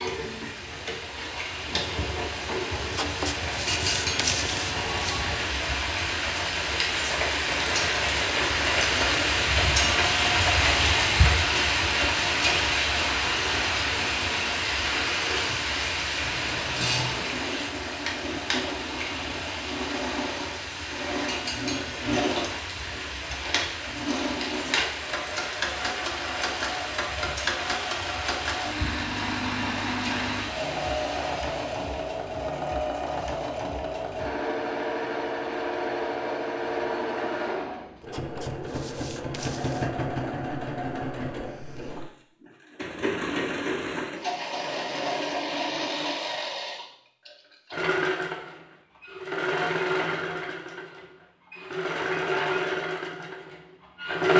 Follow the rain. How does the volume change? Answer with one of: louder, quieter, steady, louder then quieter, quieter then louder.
louder then quieter.